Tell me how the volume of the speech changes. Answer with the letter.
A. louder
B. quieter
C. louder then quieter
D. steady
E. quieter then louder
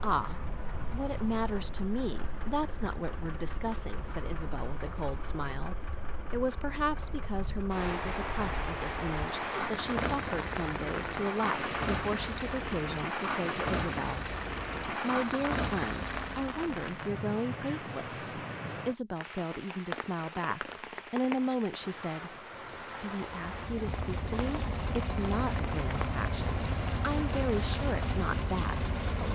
D.